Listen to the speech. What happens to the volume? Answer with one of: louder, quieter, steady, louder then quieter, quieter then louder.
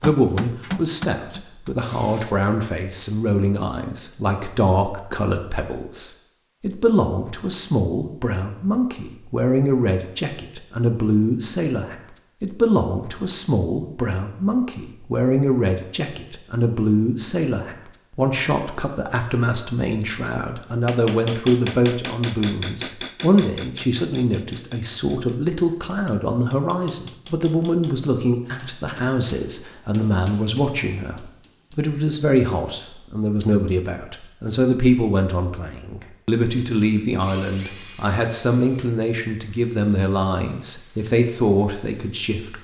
steady.